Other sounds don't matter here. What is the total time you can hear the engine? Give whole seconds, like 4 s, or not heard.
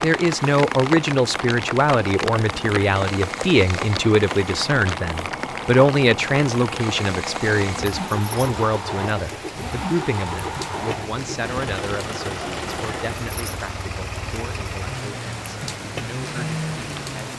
17 s.